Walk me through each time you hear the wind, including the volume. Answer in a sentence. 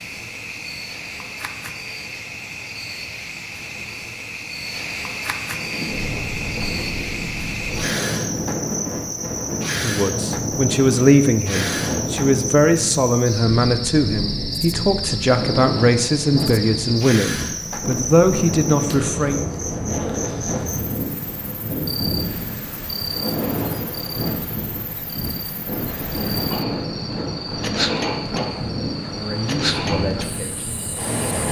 You can hear the wind from 5.5 to 31.4 s, at a steady volume.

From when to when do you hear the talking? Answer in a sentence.
You can hear the talking from 9.8 to 19.4 s and from 29.1 to 31.4 s.